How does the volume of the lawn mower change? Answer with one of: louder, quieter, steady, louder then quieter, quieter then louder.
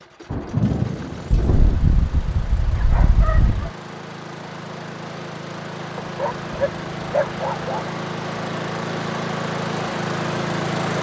louder.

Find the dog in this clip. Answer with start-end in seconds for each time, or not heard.
1.4-3.7, 6.0-7.8.